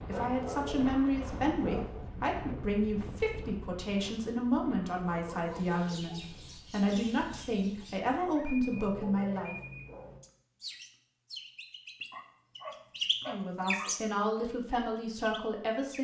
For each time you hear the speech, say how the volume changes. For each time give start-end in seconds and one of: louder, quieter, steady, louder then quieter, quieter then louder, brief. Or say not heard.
0.1-9.6 steady
13.2-15.9 brief.